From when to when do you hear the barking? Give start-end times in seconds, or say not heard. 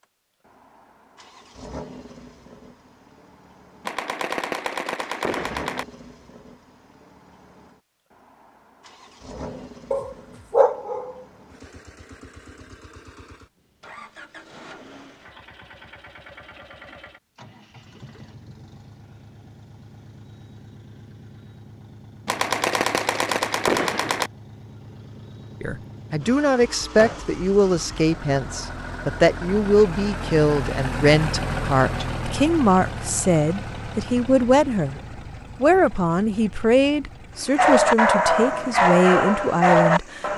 9.4-11.4, 37.5-40.3.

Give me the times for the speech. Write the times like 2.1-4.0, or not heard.
25.6-35.0, 35.6-40.2.